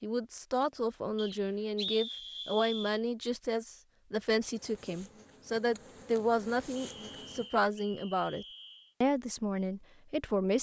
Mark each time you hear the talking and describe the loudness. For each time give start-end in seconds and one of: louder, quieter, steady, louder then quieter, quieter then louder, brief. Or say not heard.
0.0-10.5 steady.